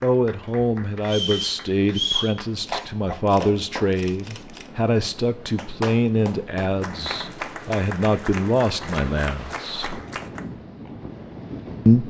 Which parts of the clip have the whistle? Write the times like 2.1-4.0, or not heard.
1.1-2.4.